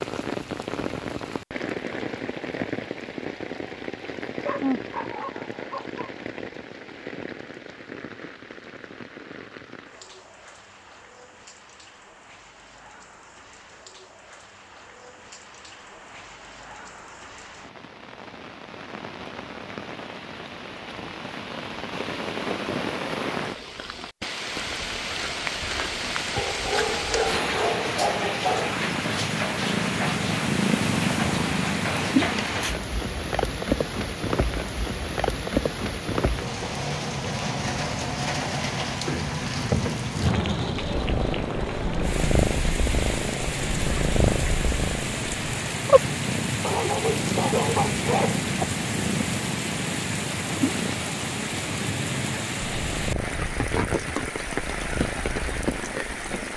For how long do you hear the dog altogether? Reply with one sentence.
The dog can be heard for 6 seconds in total.